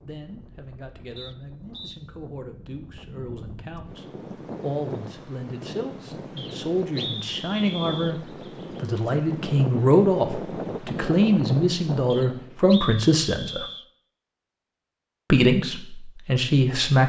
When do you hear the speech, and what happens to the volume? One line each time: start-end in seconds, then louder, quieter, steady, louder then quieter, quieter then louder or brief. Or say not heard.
0.0-13.7 louder
15.3-17.0 brief.